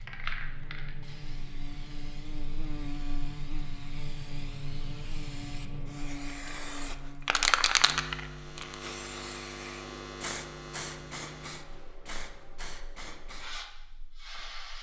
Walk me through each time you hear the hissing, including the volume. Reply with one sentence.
The hissing can be heard from 0.0 to 14.7 s, getting louder then quieter.